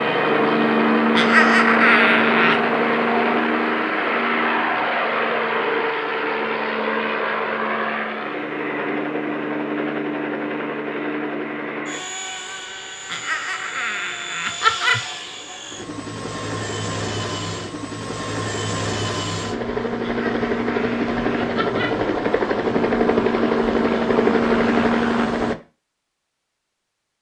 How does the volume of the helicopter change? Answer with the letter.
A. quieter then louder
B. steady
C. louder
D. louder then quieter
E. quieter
A.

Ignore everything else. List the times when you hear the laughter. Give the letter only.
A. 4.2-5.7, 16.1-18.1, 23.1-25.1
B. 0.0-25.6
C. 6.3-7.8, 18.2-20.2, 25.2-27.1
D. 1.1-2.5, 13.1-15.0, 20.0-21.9
D.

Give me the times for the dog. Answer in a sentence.
The dog can't be heard in this clip.